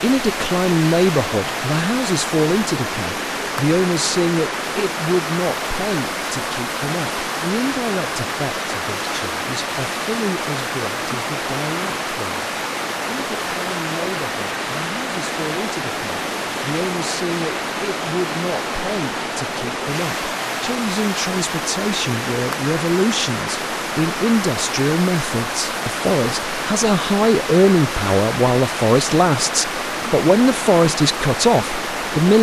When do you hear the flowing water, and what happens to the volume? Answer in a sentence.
The flowing water can be heard from 0.0 to 32.3 s, at a steady volume.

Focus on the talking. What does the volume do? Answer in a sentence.
The volume of the talking goes down, then up.